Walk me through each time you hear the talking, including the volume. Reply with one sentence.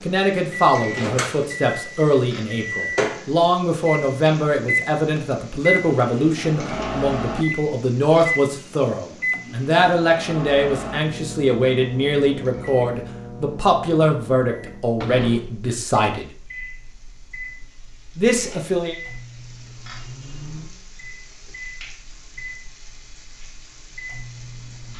You can hear the talking from 0.0 to 16.3 s, at a steady volume; and briefly from 18.1 to 18.9 s.